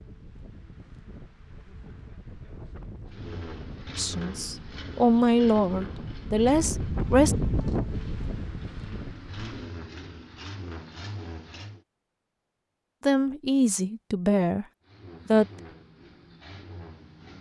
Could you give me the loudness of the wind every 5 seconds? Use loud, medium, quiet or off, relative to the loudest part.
quiet, loud, off, off.